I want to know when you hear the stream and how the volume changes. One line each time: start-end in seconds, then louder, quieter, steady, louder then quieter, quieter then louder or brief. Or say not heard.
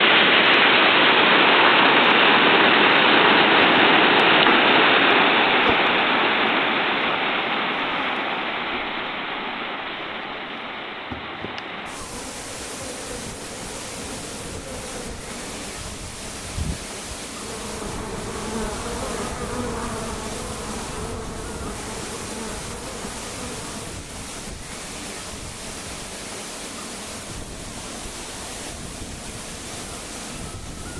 0.0-30.9 quieter.